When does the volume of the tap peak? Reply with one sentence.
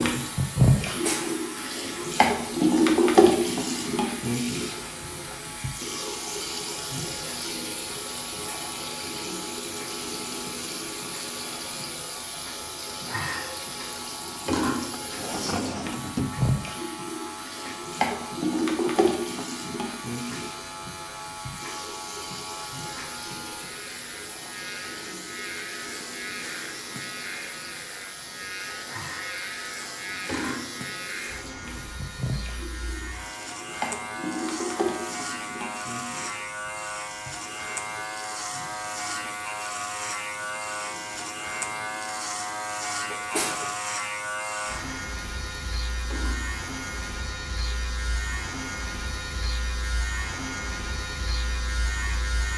The loudest moment of the tap is at 3 seconds.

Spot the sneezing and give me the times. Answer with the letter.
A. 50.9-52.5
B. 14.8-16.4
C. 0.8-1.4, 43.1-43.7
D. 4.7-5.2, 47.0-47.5
C.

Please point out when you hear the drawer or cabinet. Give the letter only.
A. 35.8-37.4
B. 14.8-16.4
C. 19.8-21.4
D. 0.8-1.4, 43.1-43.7
B.